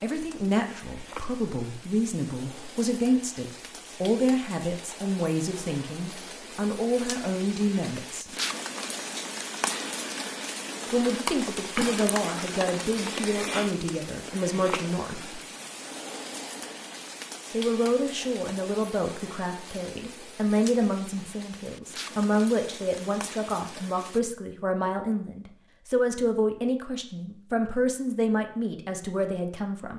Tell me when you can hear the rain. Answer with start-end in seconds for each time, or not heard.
0.0-24.2.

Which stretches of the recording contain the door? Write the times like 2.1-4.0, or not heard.
not heard.